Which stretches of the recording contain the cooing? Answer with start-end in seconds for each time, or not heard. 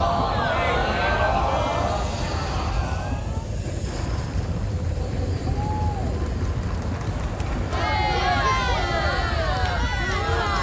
not heard.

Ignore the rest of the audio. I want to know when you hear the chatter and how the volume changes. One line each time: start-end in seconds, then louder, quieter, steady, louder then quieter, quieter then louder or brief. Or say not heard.
0.0-10.5 quieter then louder.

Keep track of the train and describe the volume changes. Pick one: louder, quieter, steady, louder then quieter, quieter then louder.
steady.